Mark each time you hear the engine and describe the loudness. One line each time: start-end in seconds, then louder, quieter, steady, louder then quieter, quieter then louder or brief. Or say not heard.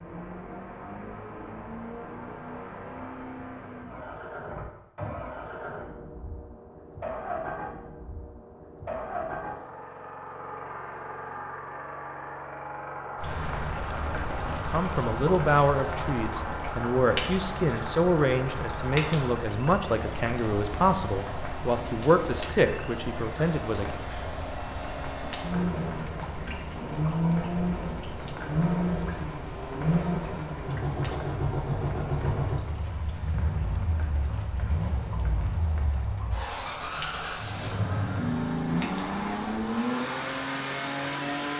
0.0-41.5 louder.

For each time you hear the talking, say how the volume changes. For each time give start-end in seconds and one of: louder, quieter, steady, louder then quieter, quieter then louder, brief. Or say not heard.
14.7-23.9 steady.